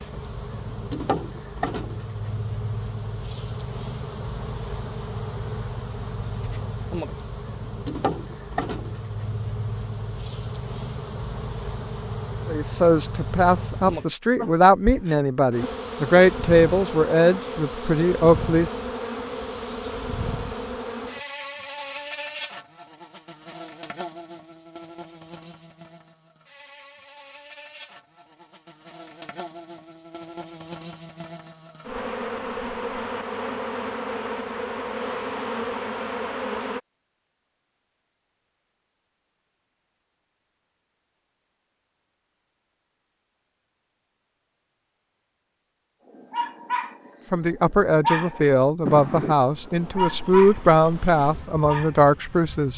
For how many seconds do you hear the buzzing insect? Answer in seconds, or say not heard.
40 s.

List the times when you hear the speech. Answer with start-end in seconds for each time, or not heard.
12.4-18.7, 47.3-52.7.